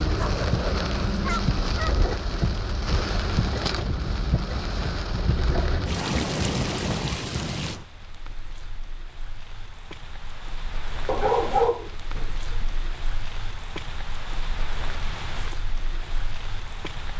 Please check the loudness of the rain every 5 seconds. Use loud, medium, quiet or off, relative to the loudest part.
loud, loud, medium, medium.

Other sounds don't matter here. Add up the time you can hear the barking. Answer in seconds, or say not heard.
3 s.